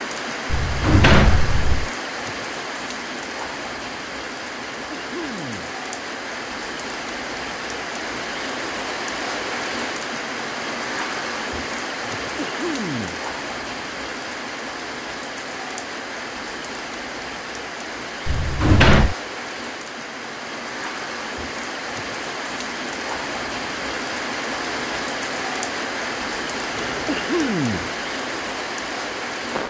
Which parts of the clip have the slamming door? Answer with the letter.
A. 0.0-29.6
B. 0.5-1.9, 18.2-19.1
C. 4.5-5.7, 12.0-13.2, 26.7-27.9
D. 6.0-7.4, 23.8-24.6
B.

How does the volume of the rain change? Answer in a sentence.
The loudness of the rain stays about the same.